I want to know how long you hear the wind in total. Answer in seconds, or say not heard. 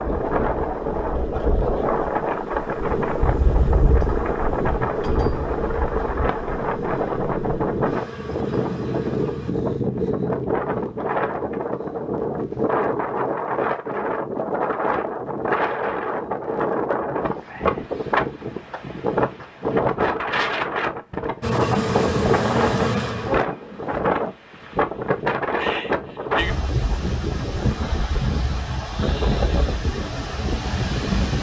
31 s.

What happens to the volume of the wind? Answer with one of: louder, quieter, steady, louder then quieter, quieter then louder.
steady.